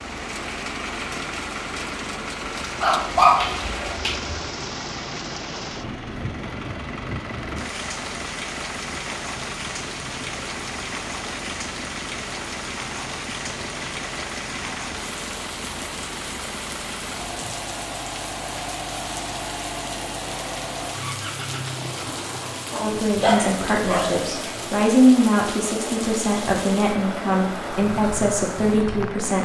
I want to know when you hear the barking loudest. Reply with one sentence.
The loudest moment of the barking is at 3 seconds.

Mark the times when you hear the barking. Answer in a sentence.
The barking can be heard from 2.8 to 4.3 s and from 22.4 to 24.3 s.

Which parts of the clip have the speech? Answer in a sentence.
You can hear the speech from 22.8 to 29.3 s.